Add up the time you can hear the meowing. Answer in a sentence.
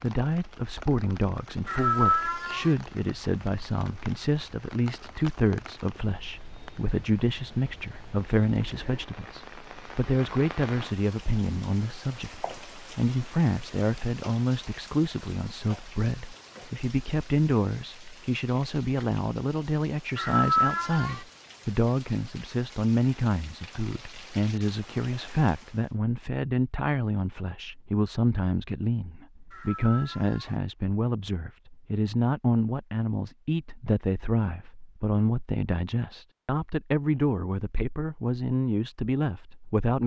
You can hear the meowing for 3 seconds altogether.